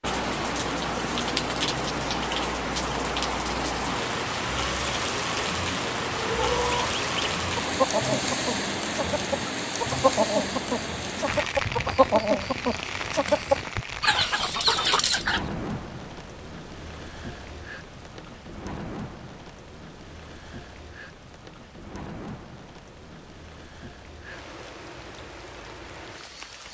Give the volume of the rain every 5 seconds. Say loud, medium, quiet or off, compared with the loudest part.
loud, loud, medium, medium, quiet, quiet.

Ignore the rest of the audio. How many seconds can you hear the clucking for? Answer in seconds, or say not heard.
9 s.